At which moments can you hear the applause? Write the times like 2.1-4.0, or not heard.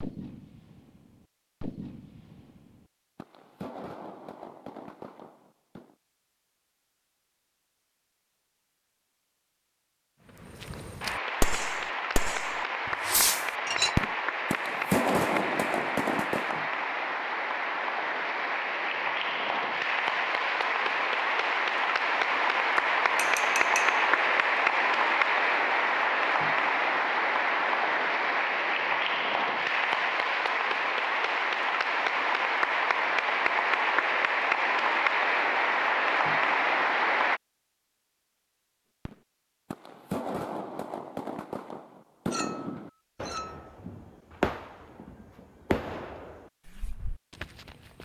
11.0-37.4.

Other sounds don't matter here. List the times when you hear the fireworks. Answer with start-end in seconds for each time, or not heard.
0.0-6.0, 10.4-16.6, 39.0-48.0.